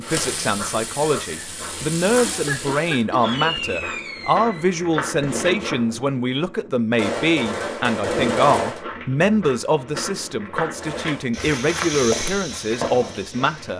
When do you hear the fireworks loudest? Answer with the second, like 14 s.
8 s.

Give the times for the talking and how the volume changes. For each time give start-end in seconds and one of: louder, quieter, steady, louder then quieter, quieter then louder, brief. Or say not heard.
0.0-13.7 steady.